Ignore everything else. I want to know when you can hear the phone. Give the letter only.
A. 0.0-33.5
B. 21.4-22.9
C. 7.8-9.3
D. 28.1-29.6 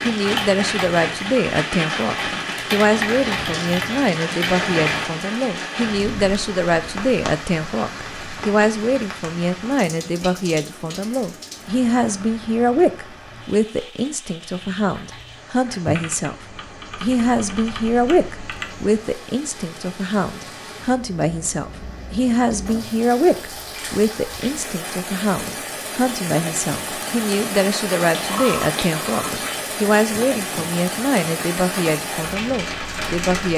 D.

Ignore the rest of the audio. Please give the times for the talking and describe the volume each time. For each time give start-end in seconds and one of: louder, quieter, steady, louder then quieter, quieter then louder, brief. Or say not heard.
0.0-33.5 steady.